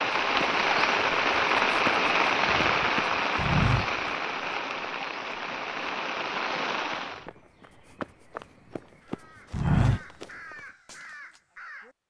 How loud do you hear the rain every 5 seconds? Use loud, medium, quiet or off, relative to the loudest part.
loud, medium, off.